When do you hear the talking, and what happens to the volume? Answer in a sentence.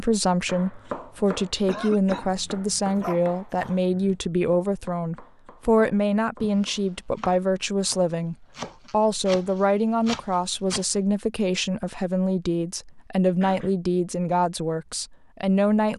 You can hear the talking from 0.0 to 15.9 s, at a steady volume.